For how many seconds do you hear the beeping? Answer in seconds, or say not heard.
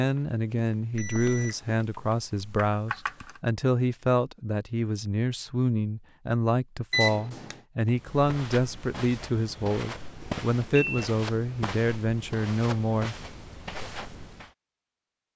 4 s.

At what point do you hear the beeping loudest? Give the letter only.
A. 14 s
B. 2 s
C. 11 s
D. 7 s
D.